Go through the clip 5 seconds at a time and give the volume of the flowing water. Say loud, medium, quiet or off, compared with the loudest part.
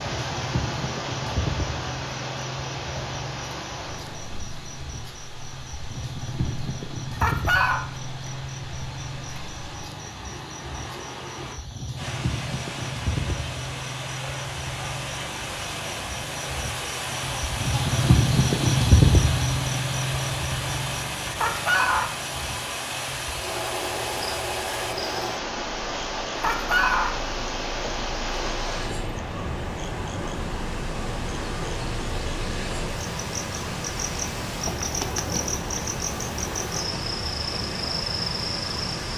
loud, quiet, medium, loud, loud, loud, loud, loud.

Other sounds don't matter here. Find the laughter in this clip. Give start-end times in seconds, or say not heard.
7.2-7.8, 21.4-22.1, 26.4-27.1.